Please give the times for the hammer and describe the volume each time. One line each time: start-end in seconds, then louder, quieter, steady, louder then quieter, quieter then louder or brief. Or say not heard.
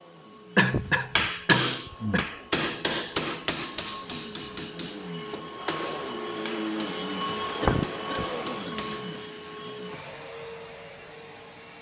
1.1-9.0 quieter.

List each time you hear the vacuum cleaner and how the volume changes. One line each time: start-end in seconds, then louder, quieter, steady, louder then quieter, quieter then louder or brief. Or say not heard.
0.0-11.7 louder then quieter.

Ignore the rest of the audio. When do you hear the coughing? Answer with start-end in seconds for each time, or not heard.
0.6-2.2, 7.6-9.2.